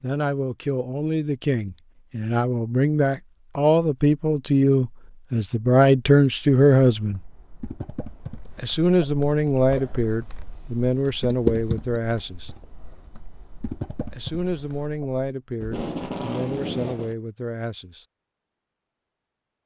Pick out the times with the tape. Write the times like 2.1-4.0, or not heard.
15.6-17.1.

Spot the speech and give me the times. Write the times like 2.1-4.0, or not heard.
0.0-7.2, 8.6-12.5, 14.1-18.1.